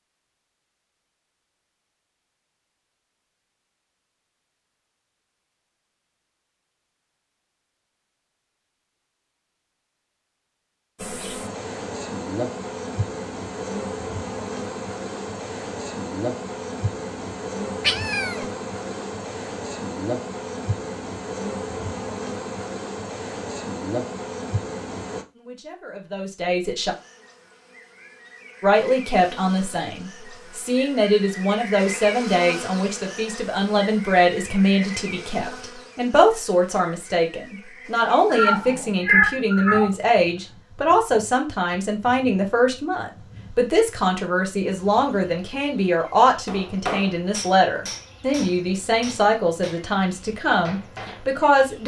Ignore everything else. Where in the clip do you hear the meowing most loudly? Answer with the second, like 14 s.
39 s.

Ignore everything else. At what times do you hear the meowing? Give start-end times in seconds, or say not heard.
17.8-18.4, 38.3-40.0.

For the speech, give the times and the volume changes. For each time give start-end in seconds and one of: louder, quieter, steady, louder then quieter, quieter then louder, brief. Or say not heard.
25.4-26.9 brief
28.6-51.8 steady.